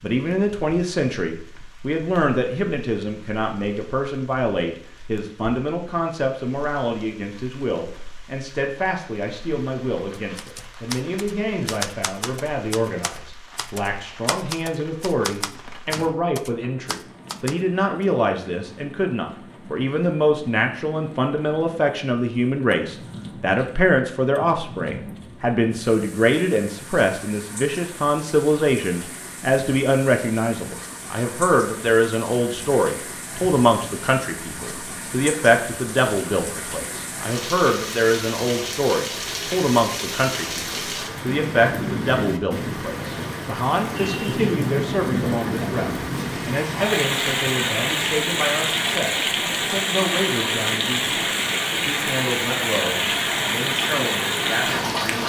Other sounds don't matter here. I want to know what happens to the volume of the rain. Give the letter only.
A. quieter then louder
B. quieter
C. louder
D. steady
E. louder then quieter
C.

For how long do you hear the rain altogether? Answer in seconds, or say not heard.
55 s.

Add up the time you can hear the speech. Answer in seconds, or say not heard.
55 s.